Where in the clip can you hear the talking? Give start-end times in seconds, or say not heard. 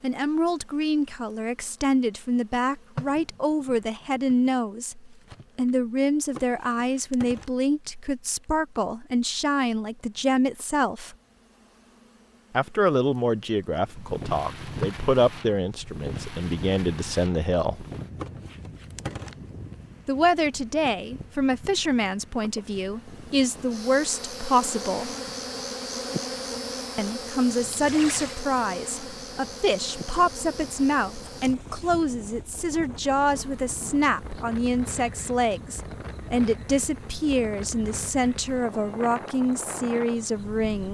0.0-11.2, 12.5-17.9, 20.1-25.1, 26.9-40.8.